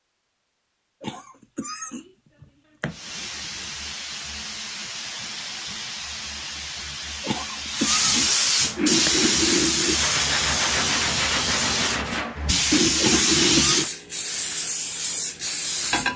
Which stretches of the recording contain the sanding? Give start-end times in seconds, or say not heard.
8.8-13.9.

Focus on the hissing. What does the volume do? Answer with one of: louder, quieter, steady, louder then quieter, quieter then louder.
louder.